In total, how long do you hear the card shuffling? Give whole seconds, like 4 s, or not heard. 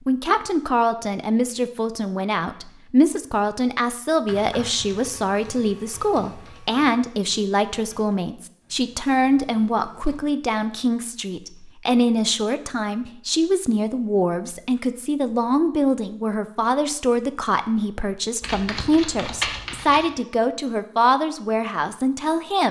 2 s.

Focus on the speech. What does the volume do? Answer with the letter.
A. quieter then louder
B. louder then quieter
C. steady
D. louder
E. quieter
C.